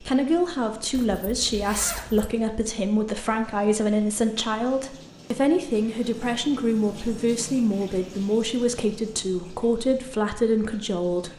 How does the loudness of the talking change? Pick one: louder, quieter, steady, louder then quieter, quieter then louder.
steady.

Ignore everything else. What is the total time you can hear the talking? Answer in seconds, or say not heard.
11 s.